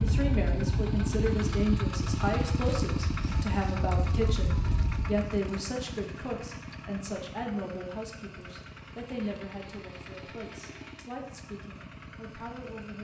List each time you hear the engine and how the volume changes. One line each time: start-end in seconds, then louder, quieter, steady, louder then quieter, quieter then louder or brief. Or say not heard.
0.0-12.9 quieter.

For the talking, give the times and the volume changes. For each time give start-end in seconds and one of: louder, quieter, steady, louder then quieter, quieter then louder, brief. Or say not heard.
0.0-12.9 quieter.